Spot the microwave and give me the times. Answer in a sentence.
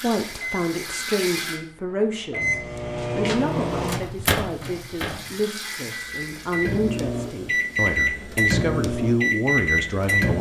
You can hear the microwave from 0.2 to 10.3 s.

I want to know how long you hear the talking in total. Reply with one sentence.
You can hear the talking for 10 seconds altogether.